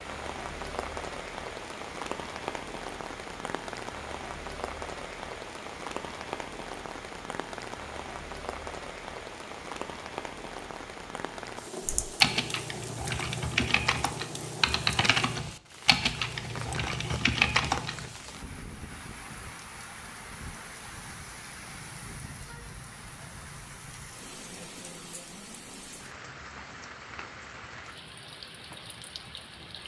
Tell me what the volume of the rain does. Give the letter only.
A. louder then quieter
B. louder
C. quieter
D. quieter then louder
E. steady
C.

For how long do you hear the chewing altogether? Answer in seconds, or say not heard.
not heard.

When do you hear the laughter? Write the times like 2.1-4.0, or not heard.
not heard.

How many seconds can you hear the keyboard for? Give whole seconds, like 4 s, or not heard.
6 s.